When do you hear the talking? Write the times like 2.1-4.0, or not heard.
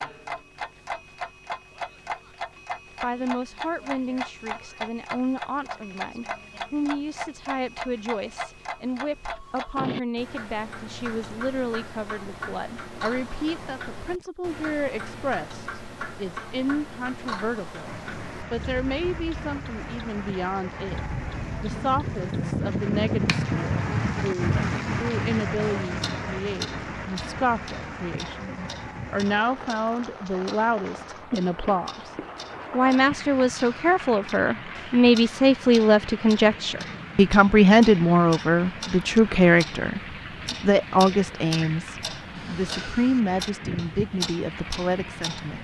3.0-21.0, 21.6-32.1, 32.7-45.6.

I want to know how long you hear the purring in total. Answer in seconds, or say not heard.
not heard.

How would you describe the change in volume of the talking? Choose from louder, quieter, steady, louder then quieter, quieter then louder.
louder.